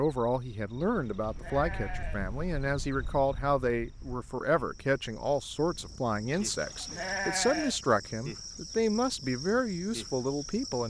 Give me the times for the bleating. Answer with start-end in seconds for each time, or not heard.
0.8-2.2, 6.3-7.8.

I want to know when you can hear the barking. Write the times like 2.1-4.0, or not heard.
not heard.